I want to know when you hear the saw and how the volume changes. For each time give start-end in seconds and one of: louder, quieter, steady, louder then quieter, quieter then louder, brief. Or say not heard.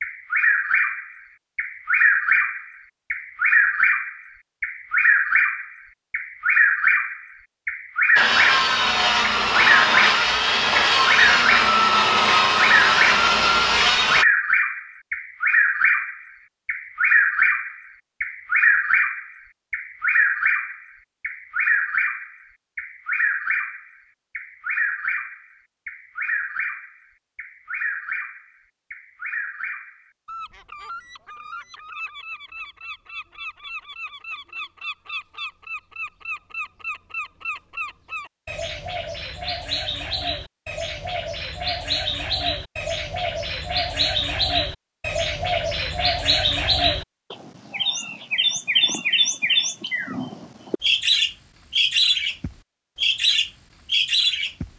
8.2-14.2 steady.